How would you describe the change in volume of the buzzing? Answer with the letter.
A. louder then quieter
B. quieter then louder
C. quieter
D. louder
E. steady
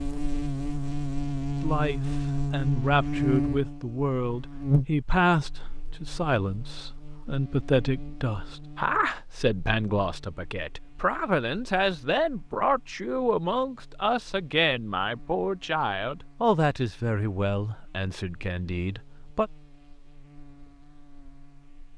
C.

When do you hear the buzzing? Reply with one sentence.
You can hear the buzzing from 0.0 to 21.9 s.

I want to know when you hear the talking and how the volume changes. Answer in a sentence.
You can hear the talking from 1.6 to 19.5 s, at a steady volume.